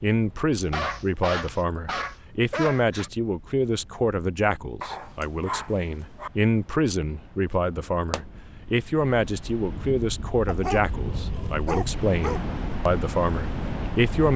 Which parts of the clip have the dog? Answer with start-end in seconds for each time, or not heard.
0.6-3.1, 4.8-6.3, 10.4-12.4.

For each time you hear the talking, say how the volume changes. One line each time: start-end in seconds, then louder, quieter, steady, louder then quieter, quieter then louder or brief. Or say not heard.
0.0-14.3 steady.